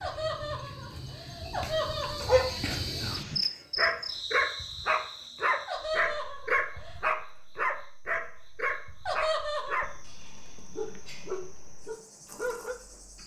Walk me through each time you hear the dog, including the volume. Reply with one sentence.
You can hear the dog from 2.2 to 12.8 s, getting quieter.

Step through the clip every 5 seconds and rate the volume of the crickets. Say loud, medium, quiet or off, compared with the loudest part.
loud, quiet, quiet.